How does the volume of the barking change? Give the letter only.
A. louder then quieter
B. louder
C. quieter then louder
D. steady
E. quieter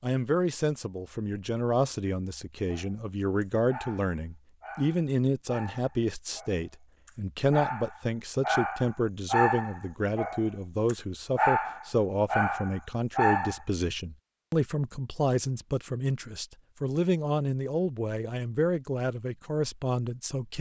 B.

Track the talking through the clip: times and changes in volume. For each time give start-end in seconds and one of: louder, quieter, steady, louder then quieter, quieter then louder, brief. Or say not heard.
0.0-20.5 steady.